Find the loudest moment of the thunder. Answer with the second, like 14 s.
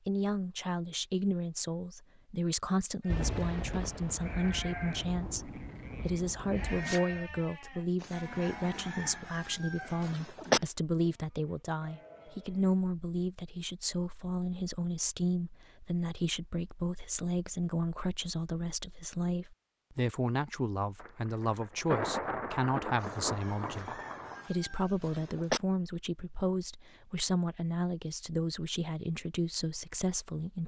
22 s.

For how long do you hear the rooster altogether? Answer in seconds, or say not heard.
5 s.